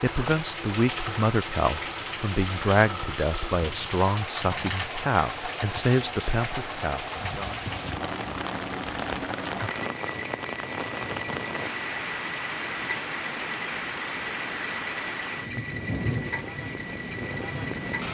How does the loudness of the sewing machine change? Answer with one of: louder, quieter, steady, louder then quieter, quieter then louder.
steady.